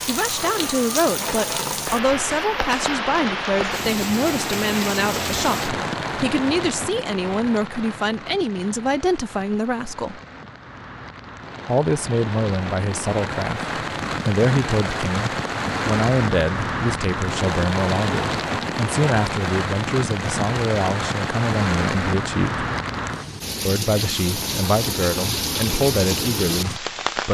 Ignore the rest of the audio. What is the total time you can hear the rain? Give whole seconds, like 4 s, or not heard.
27 s.